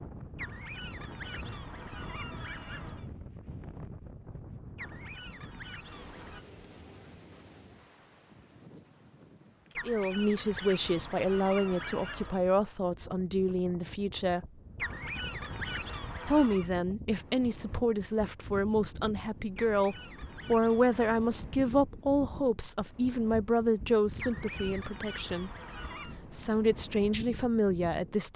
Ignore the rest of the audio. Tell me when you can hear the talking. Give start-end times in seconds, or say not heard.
9.8-14.4, 16.2-28.3.